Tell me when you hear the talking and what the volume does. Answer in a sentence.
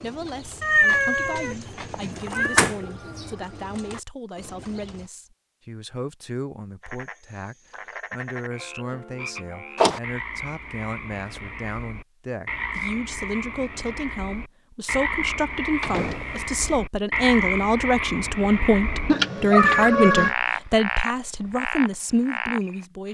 The talking can be heard from 0.0 to 23.0 s, getting louder.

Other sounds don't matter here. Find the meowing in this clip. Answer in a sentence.
The meowing can be heard from 0.6 to 2.7 s and from 19.1 to 20.3 s.